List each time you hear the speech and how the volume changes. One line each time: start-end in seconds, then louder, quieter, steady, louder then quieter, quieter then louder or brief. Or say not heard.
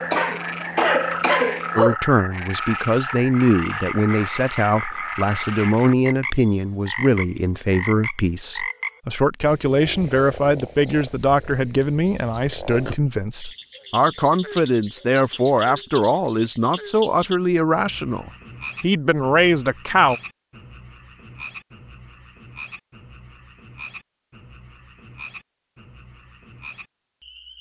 1.8-20.1 steady.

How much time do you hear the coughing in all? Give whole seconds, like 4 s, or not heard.
2 s.